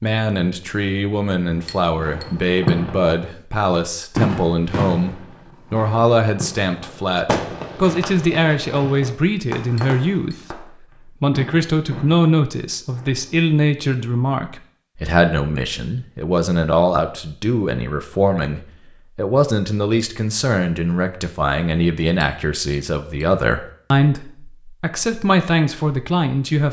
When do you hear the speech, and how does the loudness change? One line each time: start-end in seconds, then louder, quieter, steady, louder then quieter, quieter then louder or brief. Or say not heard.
0.0-26.6 steady.